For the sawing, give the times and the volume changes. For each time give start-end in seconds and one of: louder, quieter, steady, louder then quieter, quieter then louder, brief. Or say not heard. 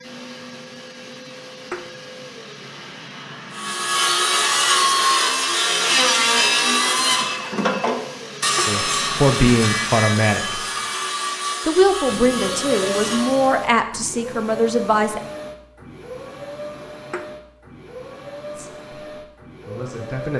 3.5-13.6 quieter.